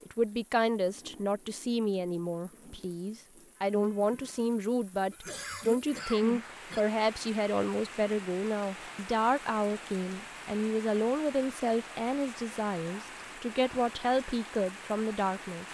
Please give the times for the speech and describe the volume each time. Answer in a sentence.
You can hear the speech from 0.1 to 15.6 s, at a steady volume.